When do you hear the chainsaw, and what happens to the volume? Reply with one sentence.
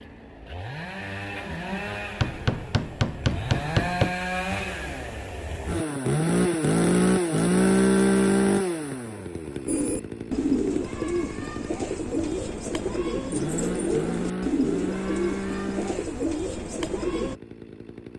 You can hear the chainsaw from 0.0 to 18.1 s, getting louder then quieter.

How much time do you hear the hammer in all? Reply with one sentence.
You can hear the hammer for 2 seconds altogether.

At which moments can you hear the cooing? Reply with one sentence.
You can hear the cooing from 9.7 to 17.4 s.